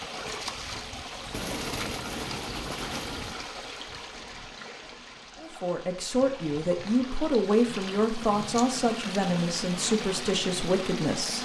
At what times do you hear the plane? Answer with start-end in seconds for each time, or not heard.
not heard.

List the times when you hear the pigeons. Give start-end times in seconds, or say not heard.
1.3-3.4.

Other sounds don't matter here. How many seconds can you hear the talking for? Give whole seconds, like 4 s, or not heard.
6 s.